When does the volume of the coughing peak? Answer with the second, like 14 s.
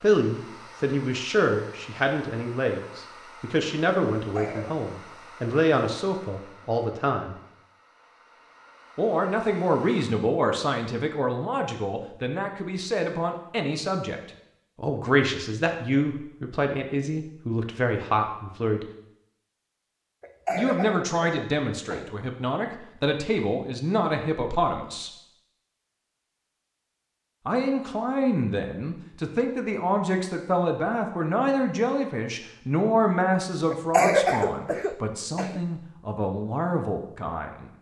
34 s.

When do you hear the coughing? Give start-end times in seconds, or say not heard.
4.2-4.8, 20.2-22.1, 33.7-35.6.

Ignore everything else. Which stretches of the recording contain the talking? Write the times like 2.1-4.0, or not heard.
0.0-7.3, 8.9-18.9, 20.6-25.1, 27.4-37.7.